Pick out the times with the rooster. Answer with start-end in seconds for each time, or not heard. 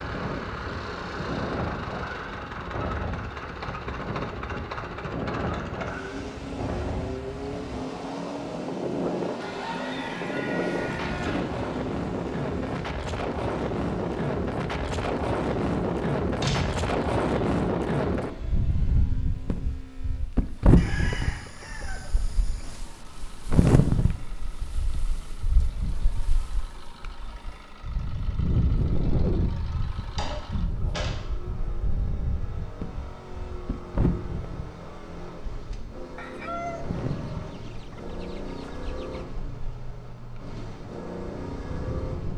9.4-11.4, 20.8-22.8, 36.1-39.2.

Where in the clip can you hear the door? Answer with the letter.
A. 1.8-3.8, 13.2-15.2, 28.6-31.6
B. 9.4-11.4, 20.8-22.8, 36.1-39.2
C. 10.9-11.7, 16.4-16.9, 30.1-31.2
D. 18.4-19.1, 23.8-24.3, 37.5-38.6
C.